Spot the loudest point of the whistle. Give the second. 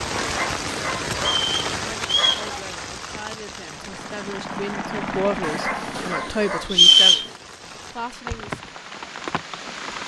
7 s.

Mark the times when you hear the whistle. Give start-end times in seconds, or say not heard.
1.1-2.5, 6.7-7.2.